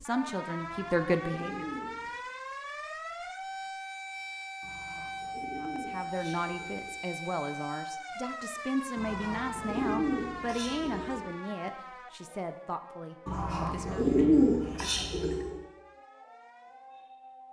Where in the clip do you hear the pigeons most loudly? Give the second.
14 s.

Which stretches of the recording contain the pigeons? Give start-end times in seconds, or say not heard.
0.6-2.1, 4.6-7.0, 8.9-11.3, 13.2-15.6.